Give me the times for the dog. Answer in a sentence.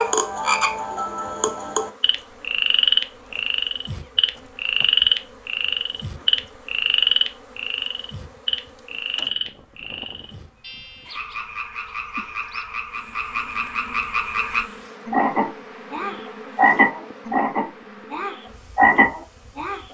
The dog can't be heard in this clip.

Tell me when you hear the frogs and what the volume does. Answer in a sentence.
You can hear the frogs from 0.0 to 19.9 s, getting quieter then louder.